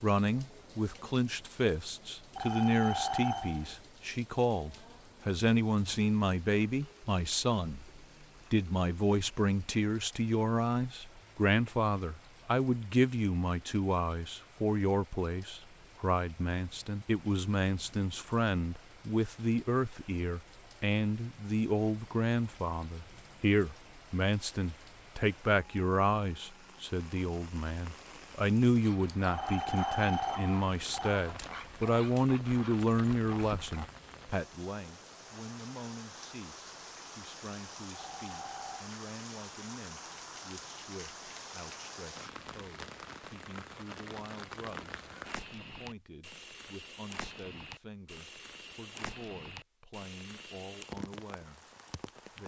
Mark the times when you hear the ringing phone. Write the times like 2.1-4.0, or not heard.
2.4-3.9, 29.3-31.1, 37.9-38.9.